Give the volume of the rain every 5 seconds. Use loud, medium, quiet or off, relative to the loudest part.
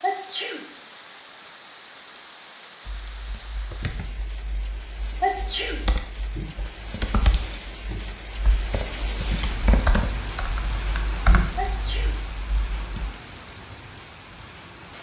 medium, loud, loud.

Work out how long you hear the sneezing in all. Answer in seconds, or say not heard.
2 s.